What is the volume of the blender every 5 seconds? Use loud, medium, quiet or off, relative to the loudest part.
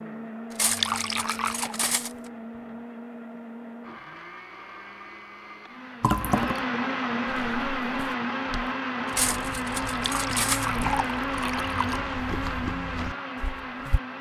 medium, loud, loud.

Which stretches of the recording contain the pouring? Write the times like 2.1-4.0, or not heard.
0.6-1.8, 6.0-6.7, 9.8-12.0.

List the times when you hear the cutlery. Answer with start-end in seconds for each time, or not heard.
0.5-2.1, 9.1-10.8.